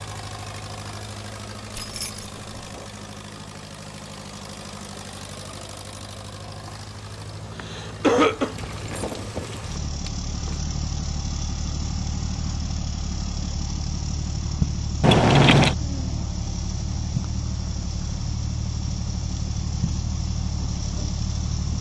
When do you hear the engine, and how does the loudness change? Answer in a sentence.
You can hear the engine from 0.0 to 21.7 s, getting louder.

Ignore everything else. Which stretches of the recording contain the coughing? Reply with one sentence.
The coughing can be heard from 7.5 to 8.6 s.